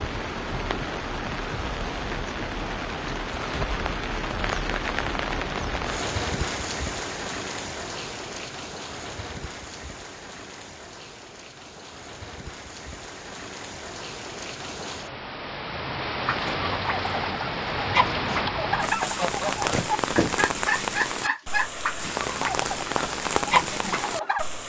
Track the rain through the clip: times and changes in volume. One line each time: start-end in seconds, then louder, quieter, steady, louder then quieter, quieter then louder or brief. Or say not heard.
0.0-24.6 quieter then louder.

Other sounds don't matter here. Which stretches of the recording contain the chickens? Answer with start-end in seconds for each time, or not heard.
16.2-24.4.